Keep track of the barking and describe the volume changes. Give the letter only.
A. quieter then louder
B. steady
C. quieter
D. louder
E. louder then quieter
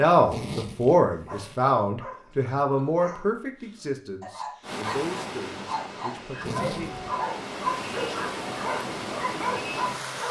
D.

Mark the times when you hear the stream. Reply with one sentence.
The stream can be heard from 4.6 to 10.2 s.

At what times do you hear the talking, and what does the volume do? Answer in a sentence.
You can hear the talking from 0.0 to 6.9 s, getting quieter.